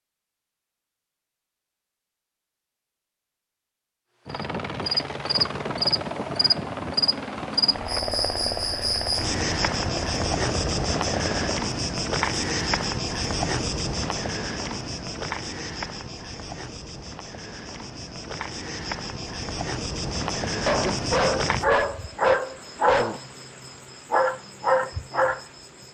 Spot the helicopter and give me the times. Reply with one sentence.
The helicopter can be heard from 4.2 to 11.6 s.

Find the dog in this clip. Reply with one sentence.
You can hear the dog from 20.6 to 23.2 s.